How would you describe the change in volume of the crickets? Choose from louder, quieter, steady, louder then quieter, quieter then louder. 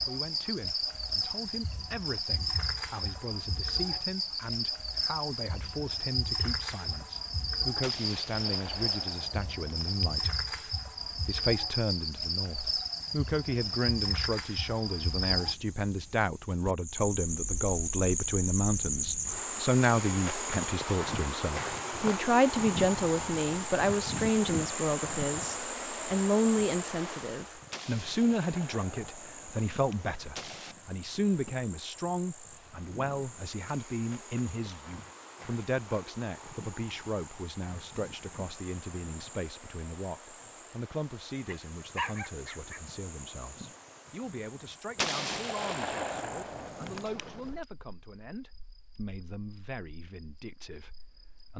quieter.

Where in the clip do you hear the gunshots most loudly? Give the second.
45 s.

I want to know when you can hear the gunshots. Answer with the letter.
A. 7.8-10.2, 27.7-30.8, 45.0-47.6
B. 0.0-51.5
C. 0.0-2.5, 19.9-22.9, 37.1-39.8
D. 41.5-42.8
A.